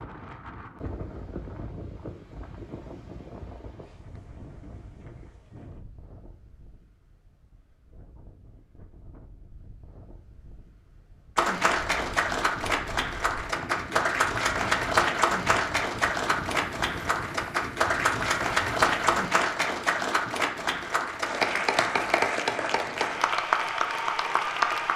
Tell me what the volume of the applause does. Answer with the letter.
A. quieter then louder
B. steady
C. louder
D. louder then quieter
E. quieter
B.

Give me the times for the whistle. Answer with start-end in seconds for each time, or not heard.
not heard.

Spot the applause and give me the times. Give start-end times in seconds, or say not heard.
11.3-24.9.